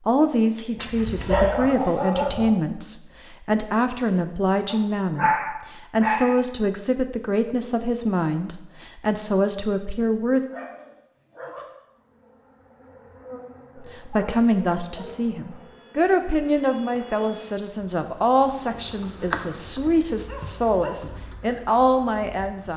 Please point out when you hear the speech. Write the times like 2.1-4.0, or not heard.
0.1-10.4, 13.8-22.7.